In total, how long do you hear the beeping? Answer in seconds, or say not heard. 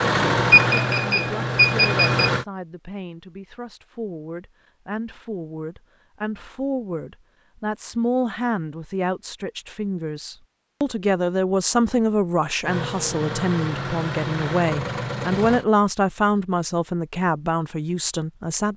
2 s.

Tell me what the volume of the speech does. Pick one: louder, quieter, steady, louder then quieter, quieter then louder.
louder.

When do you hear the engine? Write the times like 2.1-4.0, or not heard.
0.0-2.5, 12.6-15.7.